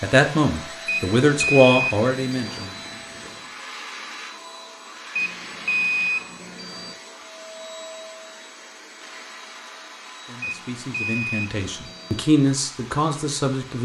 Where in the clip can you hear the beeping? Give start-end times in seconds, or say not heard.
0.8-2.6, 5.2-7.0, 10.4-12.2.